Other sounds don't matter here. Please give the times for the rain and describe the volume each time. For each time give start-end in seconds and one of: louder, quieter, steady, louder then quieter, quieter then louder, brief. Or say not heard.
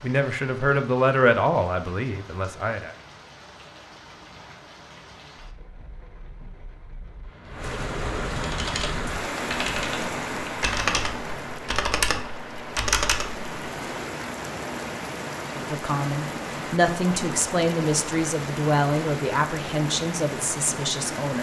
0.0-21.3 louder.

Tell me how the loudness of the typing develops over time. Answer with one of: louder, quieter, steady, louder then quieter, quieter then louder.
louder.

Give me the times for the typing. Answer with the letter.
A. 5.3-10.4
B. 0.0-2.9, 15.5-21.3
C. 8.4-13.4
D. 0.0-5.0
C.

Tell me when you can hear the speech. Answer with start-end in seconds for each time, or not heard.
0.0-2.9, 15.5-21.3.